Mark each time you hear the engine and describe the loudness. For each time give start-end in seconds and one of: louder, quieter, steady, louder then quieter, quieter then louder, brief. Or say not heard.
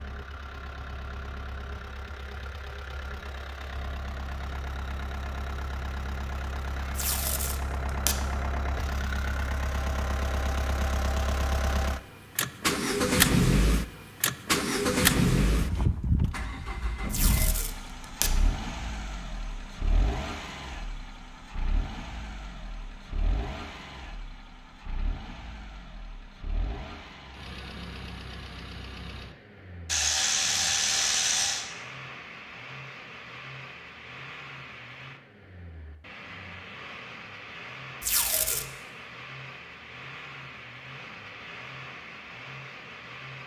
0.0-43.4 louder then quieter.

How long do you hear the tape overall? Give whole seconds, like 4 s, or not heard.
3 s.